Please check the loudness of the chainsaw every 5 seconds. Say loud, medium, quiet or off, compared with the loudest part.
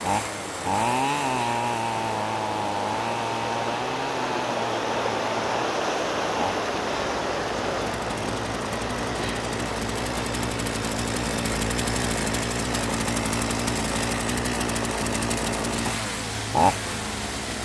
loud, medium, loud, loud.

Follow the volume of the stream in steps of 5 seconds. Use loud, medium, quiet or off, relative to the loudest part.
loud, loud, medium, medium.